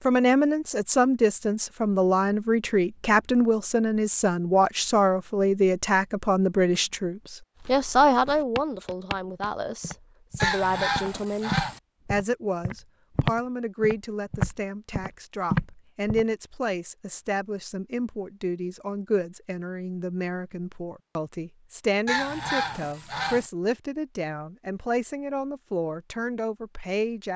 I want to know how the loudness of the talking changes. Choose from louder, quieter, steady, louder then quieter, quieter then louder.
quieter.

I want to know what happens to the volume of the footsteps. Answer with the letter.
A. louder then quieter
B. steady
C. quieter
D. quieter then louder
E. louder
E.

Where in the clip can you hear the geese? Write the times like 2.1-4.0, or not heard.
10.4-11.8, 22.1-23.5.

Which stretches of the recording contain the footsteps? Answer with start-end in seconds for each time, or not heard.
7.5-16.2.